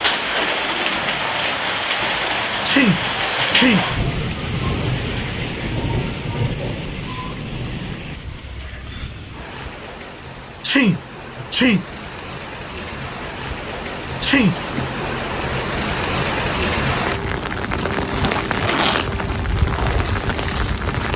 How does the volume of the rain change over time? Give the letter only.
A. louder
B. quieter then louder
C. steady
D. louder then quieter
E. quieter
B.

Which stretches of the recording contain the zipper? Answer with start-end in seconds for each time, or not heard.
18.1-19.1.